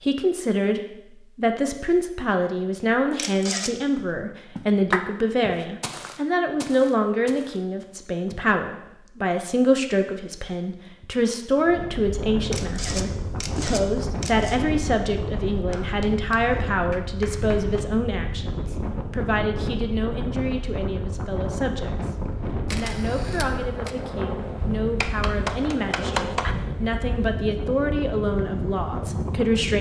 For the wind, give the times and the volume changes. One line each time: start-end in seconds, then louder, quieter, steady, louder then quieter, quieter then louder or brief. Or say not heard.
11.6-29.7 steady.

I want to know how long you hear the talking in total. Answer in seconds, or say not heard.
29 s.